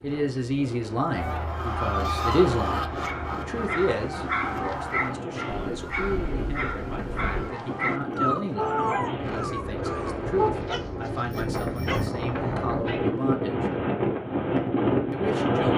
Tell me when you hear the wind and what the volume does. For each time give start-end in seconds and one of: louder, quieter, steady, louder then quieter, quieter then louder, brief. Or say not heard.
0.0-15.7 louder.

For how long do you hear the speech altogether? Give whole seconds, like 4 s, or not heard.
14 s.